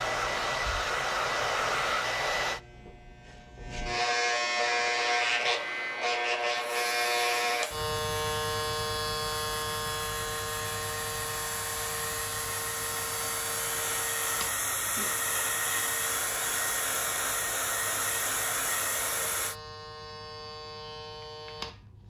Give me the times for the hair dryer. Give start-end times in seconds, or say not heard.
0.0-2.6, 4.6-19.6.